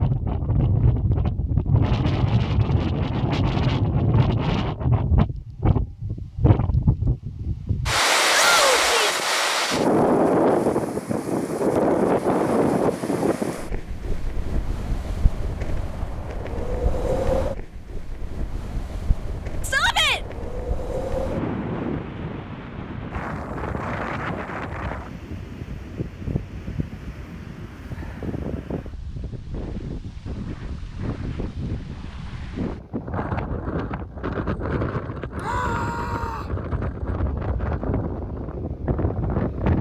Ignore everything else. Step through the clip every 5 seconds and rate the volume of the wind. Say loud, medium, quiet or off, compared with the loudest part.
loud, loud, loud, medium, medium, quiet, medium, medium.